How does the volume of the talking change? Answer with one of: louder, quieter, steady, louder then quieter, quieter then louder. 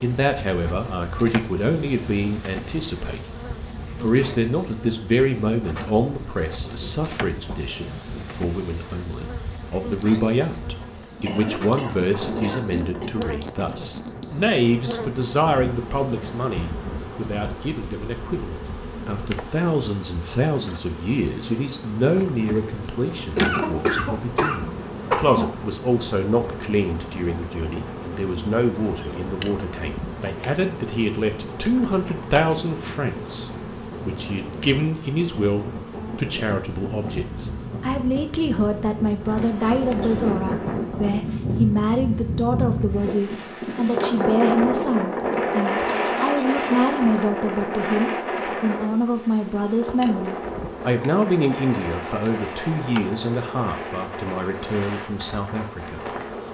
steady.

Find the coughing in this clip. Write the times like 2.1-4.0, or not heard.
10.8-13.1, 23.4-25.5, 39.4-40.2.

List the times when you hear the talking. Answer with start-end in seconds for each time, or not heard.
0.0-3.2, 4.0-56.0.